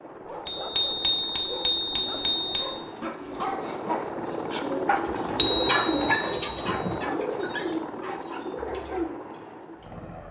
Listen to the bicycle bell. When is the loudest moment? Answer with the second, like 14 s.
6 s.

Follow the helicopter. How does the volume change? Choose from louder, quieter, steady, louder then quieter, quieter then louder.
louder then quieter.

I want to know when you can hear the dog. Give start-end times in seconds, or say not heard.
0.2-9.1.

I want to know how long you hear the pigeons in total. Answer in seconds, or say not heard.
8 s.